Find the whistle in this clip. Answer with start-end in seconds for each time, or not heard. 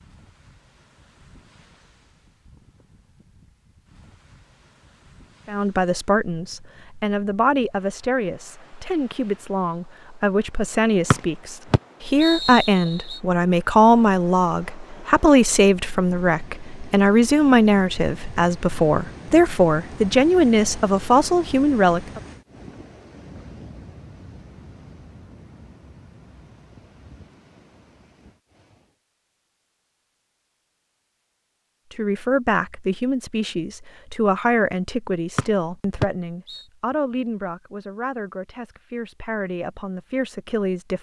11.1-13.2, 35.4-36.6.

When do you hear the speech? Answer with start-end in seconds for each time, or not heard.
5.5-22.2, 31.9-40.9.